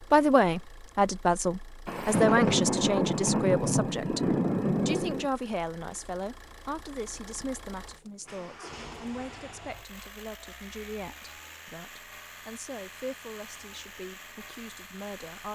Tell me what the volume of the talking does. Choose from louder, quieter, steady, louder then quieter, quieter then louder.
quieter.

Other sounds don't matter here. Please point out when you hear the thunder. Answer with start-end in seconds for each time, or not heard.
1.9-5.3.